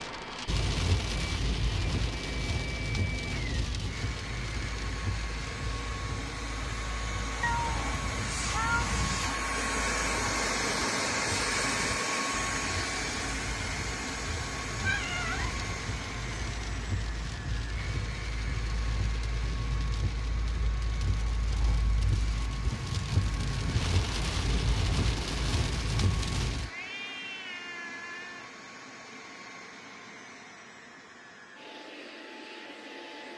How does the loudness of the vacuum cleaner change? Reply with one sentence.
The loudness of the vacuum cleaner goes up, then down.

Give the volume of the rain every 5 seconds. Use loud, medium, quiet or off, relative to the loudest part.
loud, medium, medium, medium, loud, loud, off.